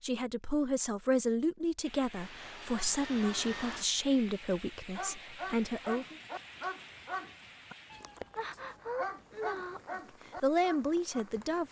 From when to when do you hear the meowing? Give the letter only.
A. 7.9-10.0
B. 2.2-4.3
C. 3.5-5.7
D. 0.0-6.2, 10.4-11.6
A.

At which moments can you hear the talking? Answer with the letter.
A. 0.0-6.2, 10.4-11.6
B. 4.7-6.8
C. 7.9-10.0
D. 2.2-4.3
A.